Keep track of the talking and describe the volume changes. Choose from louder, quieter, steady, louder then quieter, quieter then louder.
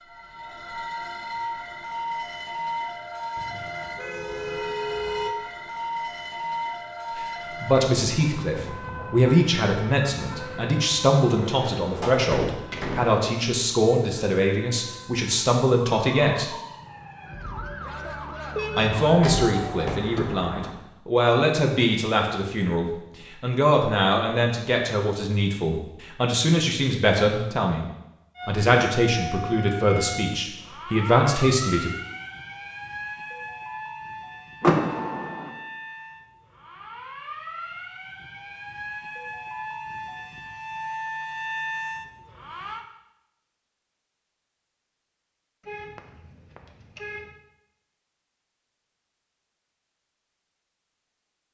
steady.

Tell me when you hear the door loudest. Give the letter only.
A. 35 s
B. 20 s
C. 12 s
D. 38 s
A.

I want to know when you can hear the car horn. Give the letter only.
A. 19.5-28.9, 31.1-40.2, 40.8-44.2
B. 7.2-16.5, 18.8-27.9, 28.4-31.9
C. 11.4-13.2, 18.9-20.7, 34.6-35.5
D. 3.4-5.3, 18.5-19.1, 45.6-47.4
D.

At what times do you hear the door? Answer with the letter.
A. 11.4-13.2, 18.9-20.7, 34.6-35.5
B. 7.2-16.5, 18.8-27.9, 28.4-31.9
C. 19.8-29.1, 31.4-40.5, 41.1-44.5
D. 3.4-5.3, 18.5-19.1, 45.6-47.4
A.